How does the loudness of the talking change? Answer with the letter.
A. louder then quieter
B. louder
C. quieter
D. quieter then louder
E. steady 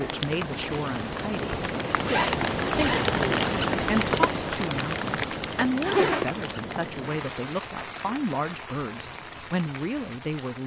E.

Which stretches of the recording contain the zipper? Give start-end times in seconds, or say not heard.
2.0-3.1, 5.8-6.4.